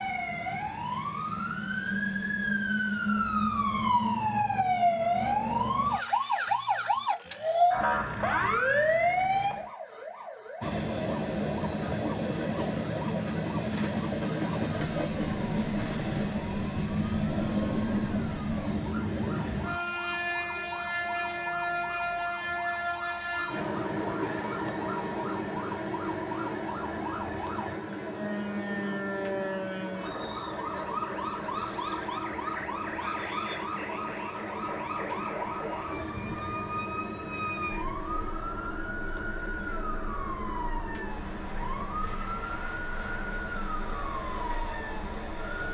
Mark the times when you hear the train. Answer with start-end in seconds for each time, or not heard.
0.0-3.9, 10.6-45.6.